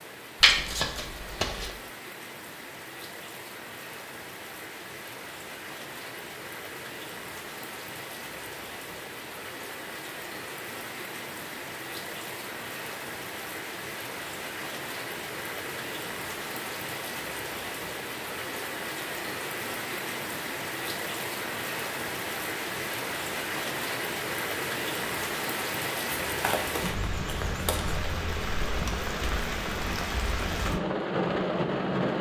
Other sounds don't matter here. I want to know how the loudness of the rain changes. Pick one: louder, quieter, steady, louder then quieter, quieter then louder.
louder.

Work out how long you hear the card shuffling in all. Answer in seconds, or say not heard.
3 s.